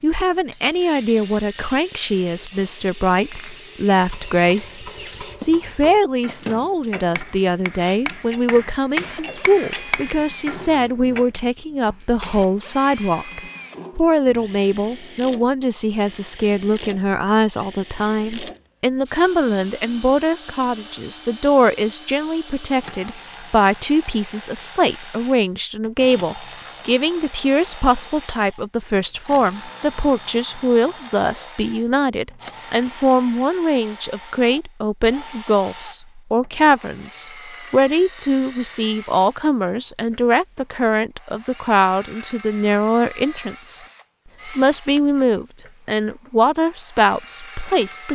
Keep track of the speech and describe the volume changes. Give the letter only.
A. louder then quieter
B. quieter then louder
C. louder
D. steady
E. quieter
D.